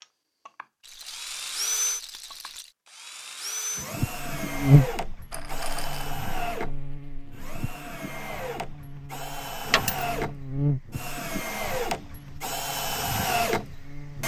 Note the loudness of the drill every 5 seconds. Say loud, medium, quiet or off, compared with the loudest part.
loud, medium, loud.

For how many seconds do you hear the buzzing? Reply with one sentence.
The buzzing can be heard for 10 seconds in total.